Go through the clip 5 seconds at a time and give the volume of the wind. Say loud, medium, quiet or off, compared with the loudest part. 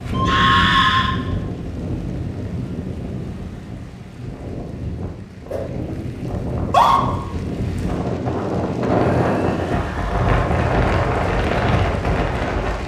medium, loud, loud.